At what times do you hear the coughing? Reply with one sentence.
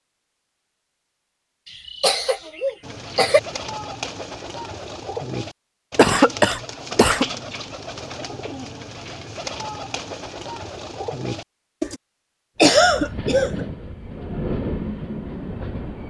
The coughing can be heard from 1.9 to 3.4 s, from 6.0 to 7.2 s and from 12.6 to 13.6 s.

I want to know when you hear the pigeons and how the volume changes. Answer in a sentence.
The pigeons can be heard from 2.8 to 12.0 s, at a steady volume.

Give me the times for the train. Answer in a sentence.
The train can be heard from 12.6 to 16.0 s.